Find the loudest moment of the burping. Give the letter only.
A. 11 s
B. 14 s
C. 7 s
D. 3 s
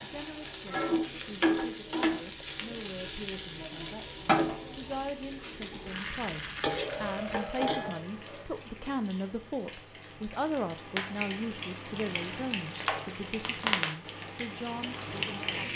C.